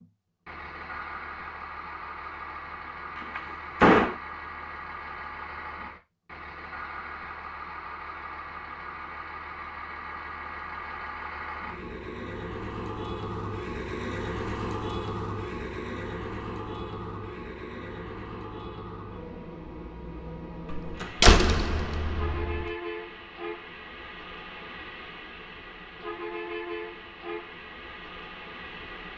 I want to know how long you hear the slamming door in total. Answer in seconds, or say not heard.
3 s.